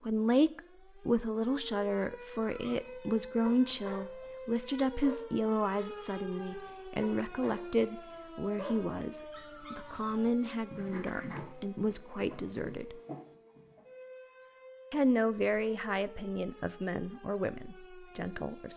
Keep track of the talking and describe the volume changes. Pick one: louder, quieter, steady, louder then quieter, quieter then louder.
quieter.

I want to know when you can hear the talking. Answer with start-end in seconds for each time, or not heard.
0.1-12.9, 14.9-18.7.